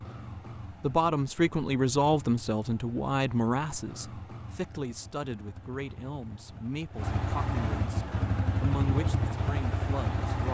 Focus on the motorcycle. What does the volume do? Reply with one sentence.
The loudness of the motorcycle goes up.